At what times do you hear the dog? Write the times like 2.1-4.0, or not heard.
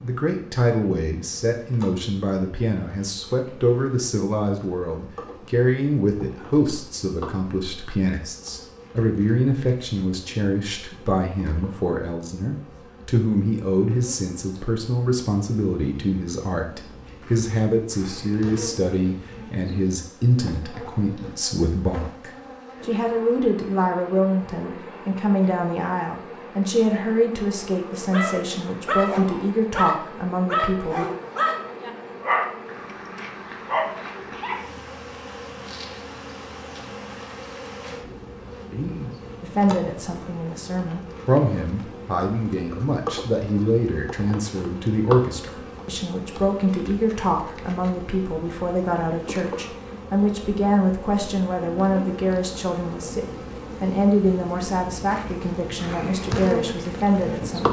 28.1-32.5, 33.1-34.7.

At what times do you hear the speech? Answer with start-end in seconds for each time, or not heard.
0.0-31.1, 39.4-57.6.